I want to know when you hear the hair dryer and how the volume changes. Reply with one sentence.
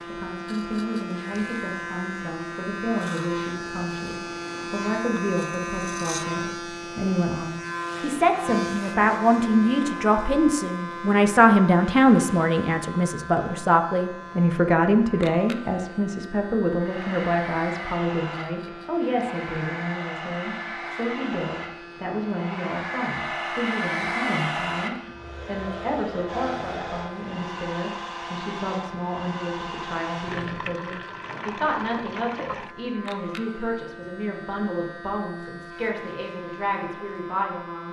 You can hear the hair dryer from 16.8 to 30.5 s, getting louder then quieter.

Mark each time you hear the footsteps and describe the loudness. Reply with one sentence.
You can't hear the footsteps here.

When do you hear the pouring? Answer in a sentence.
You can hear the pouring from 30.2 to 32.8 s.